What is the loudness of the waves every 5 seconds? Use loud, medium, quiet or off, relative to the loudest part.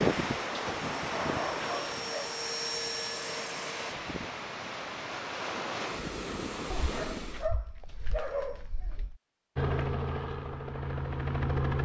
loud, loud, off.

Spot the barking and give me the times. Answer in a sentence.
You can hear the barking from 0.6 to 2.3 s and from 6.7 to 9.2 s.